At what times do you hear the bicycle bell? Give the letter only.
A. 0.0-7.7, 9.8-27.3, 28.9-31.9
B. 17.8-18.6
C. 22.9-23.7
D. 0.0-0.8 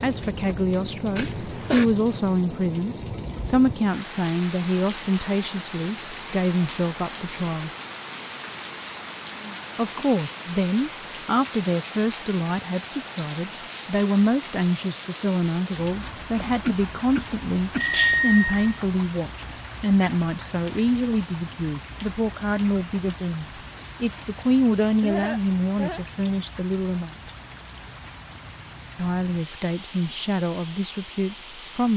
B.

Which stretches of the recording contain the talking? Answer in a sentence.
You can hear the talking from 0.0 to 7.7 s, from 9.8 to 27.3 s and from 28.9 to 31.9 s.